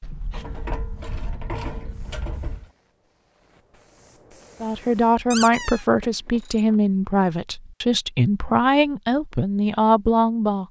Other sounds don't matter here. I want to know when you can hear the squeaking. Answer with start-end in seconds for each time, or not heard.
5.3-5.8.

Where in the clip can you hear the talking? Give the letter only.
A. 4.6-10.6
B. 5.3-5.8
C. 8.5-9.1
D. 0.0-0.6
A.